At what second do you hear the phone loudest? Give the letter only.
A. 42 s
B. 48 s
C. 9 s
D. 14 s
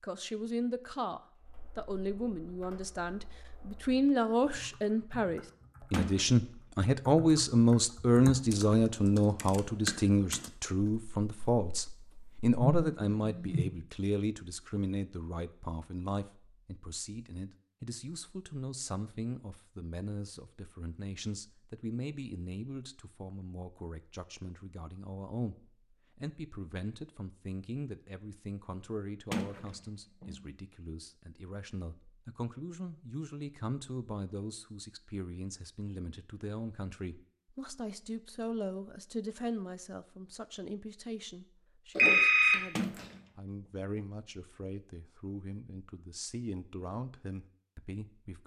A.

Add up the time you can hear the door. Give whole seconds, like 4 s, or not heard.
2 s.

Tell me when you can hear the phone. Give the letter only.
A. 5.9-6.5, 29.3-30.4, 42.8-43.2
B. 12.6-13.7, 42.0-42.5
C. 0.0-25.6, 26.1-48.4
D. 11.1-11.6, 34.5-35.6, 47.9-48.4
B.